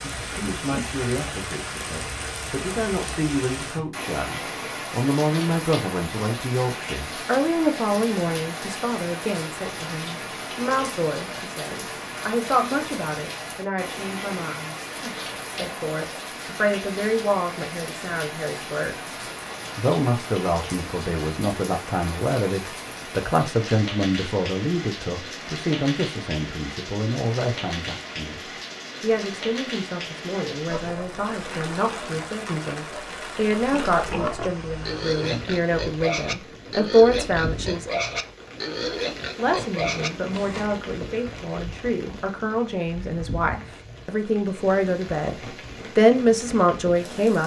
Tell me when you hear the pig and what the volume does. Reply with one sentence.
The pig can be heard from 30.6 to 40.7 s, getting louder.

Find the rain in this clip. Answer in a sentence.
The rain can be heard from 0.0 to 47.4 s.